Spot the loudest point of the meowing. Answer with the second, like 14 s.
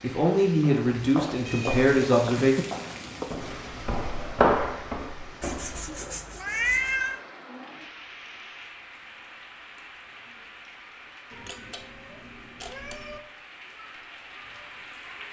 7 s.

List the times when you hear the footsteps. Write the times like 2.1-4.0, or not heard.
0.6-6.1.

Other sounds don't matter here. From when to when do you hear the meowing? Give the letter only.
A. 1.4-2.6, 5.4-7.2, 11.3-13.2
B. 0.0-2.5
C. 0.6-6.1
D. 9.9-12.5
A.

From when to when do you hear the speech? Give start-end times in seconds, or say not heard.
0.0-2.5.